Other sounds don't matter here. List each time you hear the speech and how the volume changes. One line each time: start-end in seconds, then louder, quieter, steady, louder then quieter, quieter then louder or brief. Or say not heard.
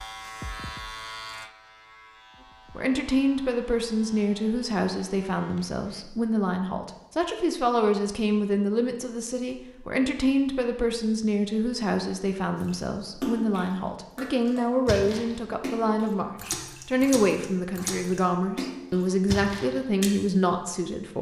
2.8-21.1 steady.